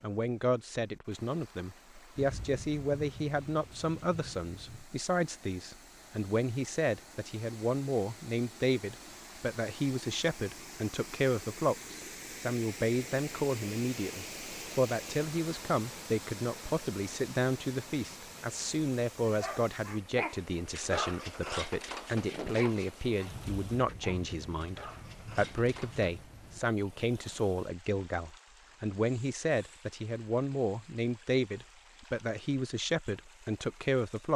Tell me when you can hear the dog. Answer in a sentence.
The dog can be heard from 19.2 to 26.1 s.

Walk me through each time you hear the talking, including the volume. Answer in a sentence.
You can hear the talking from 0.0 to 34.3 s, at a steady volume.